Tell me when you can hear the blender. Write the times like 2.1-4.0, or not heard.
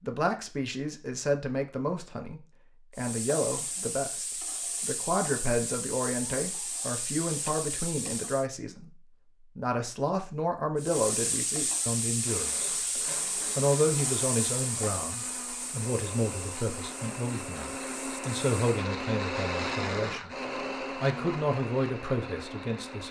12.2-23.0.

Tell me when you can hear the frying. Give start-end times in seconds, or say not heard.
3.0-8.4, 10.8-18.9.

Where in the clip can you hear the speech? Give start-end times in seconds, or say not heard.
0.0-12.7, 13.6-20.3, 20.9-23.0.